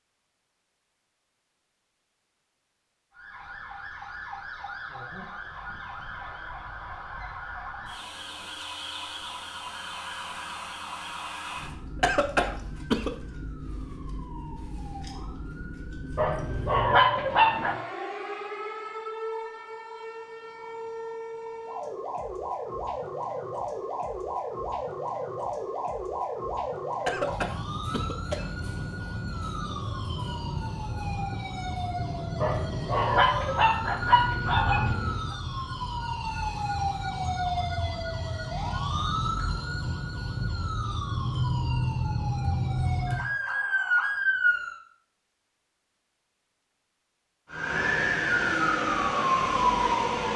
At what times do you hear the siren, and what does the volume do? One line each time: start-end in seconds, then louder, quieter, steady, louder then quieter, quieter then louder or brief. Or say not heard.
3.1-44.8 louder
47.5-50.3 brief.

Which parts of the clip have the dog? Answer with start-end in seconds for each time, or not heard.
16.1-17.8, 32.4-35.4.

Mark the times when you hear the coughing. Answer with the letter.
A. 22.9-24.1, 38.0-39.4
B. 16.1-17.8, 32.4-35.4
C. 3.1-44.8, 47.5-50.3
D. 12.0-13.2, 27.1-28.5
D.